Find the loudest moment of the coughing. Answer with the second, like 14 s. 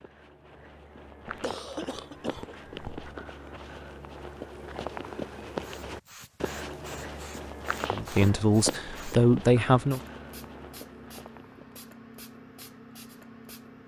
2 s.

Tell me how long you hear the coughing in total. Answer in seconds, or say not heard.
2 s.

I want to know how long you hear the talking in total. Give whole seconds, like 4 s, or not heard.
2 s.